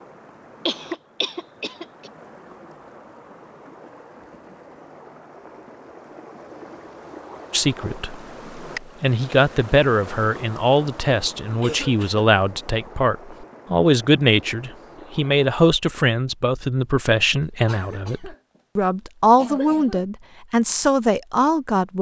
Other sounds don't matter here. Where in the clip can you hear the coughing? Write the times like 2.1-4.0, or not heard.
0.7-2.1, 11.6-12.3, 17.4-18.6, 19.4-20.1.